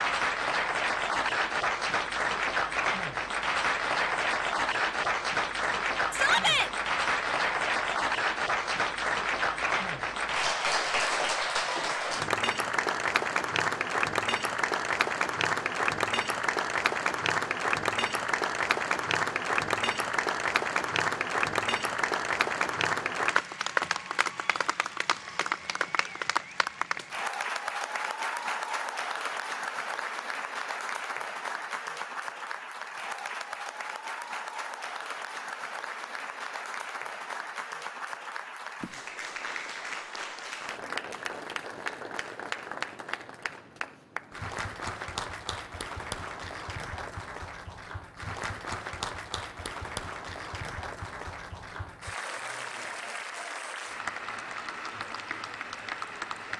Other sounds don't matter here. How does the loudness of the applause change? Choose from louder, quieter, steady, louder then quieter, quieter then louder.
quieter.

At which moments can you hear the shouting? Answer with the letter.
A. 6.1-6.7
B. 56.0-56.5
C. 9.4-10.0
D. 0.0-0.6
A.